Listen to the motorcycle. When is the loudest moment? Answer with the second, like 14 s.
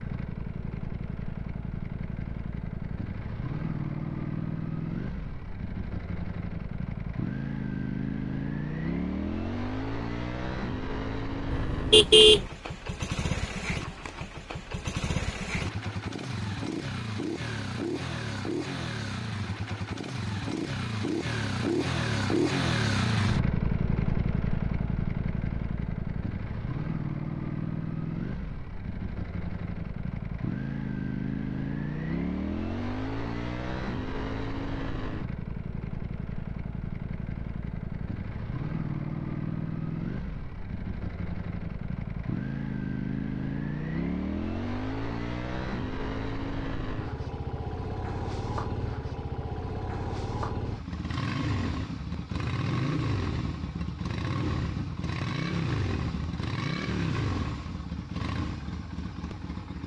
23 s.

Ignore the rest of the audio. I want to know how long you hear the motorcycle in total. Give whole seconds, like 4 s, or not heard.
60 s.